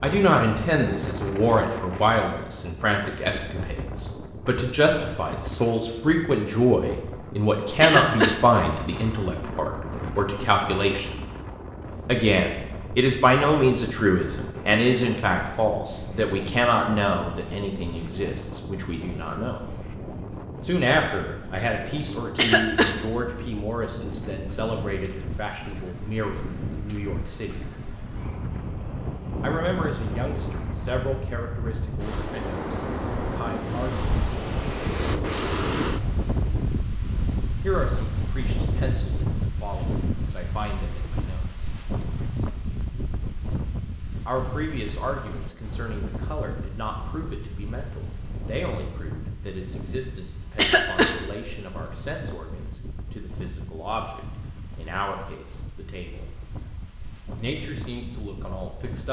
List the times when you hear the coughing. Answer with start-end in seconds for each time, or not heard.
7.8-8.3, 22.4-22.9, 50.5-51.1.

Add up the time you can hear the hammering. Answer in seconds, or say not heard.
not heard.